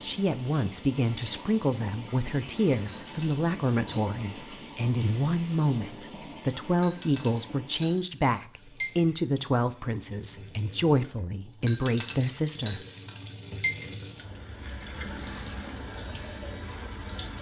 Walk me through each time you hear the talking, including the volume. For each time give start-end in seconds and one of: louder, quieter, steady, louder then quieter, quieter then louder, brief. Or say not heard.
0.0-12.8 steady.